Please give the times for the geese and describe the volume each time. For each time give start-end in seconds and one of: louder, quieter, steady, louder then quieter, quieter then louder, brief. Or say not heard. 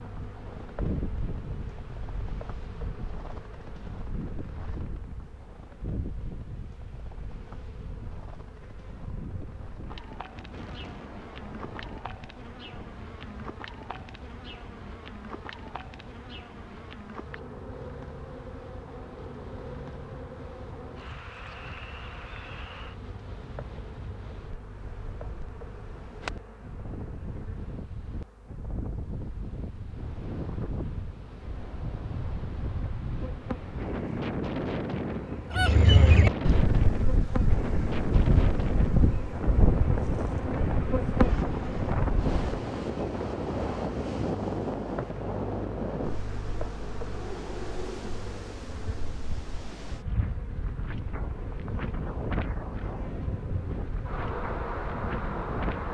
35.5-42.5 quieter.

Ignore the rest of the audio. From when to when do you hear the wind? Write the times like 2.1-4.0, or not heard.
0.0-55.8.